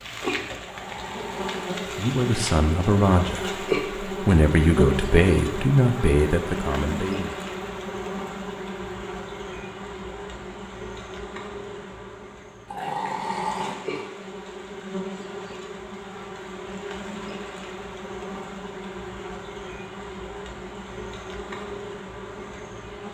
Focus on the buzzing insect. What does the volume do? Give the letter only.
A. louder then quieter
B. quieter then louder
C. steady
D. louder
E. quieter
E.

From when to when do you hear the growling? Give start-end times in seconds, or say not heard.
0.7-1.8, 12.7-14.1.